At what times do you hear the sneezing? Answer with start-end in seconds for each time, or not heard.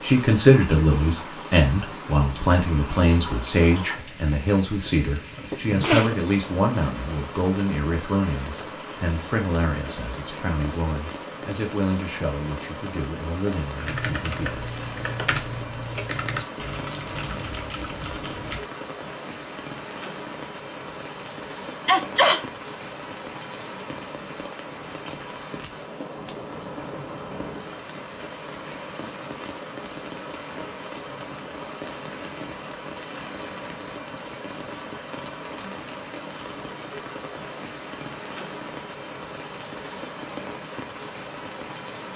5.5-6.1, 21.9-22.4.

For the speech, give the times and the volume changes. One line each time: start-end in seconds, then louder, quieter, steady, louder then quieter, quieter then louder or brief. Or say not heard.
0.0-14.7 quieter.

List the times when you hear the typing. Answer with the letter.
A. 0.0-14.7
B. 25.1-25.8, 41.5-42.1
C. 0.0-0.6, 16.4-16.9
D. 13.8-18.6
D.